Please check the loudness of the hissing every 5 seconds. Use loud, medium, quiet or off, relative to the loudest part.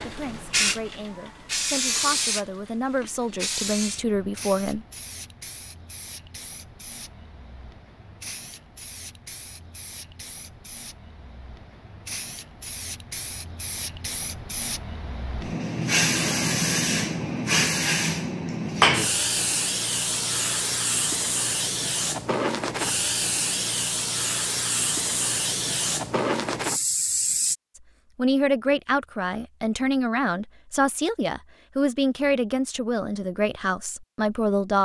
medium, quiet, quiet, loud, loud, loud, off.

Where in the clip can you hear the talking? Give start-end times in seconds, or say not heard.
0.0-4.8, 28.1-34.8.